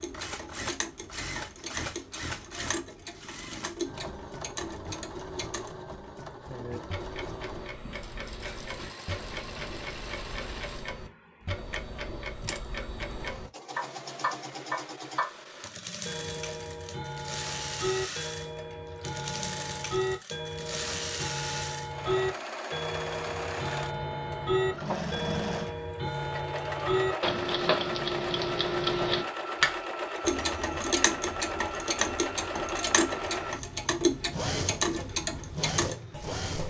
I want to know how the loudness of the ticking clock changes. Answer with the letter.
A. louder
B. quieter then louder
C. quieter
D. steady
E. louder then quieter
A.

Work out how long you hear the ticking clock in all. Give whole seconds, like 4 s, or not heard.
36 s.